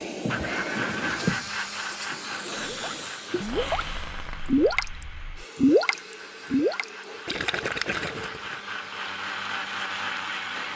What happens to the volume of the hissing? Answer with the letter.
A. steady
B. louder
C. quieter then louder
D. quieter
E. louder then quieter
D.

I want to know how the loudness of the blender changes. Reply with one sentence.
The volume of the blender goes down, then up.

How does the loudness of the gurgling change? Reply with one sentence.
The loudness of the gurgling goes up, then down.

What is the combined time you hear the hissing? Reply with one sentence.
You can hear the hissing for 11 seconds altogether.